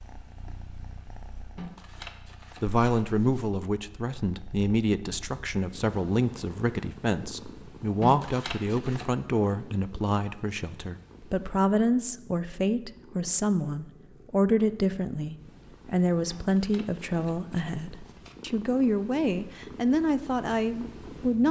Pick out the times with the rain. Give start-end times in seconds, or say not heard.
not heard.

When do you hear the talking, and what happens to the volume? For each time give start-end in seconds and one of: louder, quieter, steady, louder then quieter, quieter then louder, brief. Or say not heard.
2.6-21.4 steady.